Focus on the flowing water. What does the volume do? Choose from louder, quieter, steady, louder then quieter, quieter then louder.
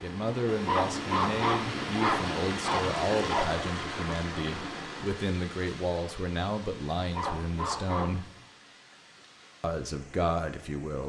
quieter.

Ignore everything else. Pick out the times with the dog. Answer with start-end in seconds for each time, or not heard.
0.5-3.5, 7.0-8.4.